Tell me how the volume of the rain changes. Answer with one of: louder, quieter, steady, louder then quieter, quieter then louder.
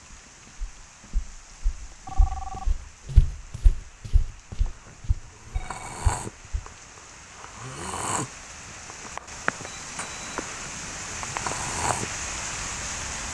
louder.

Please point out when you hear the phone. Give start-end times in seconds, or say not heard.
2.0-2.9, 4.8-6.0, 9.7-11.1.